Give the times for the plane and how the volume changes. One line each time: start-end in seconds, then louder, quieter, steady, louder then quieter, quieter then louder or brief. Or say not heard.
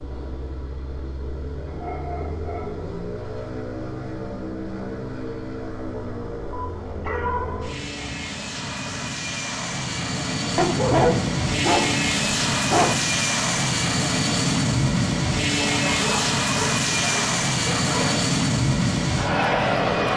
0.0-20.1 louder.